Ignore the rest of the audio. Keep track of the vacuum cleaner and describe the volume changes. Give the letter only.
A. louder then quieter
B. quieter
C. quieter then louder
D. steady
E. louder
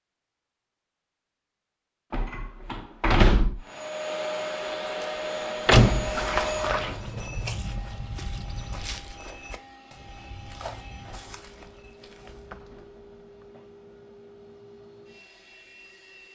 B.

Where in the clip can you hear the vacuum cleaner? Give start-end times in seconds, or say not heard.
3.6-16.2.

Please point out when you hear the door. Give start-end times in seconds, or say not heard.
2.1-3.6, 5.7-6.3, 12.2-13.4.